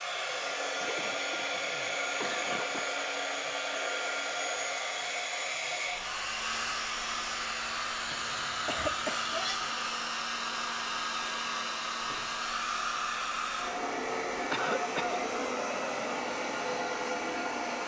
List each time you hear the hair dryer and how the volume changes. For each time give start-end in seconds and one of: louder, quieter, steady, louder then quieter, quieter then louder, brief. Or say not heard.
0.0-17.8 steady.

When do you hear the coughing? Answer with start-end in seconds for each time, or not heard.
0.8-2.8, 8.1-9.8, 14.5-15.2.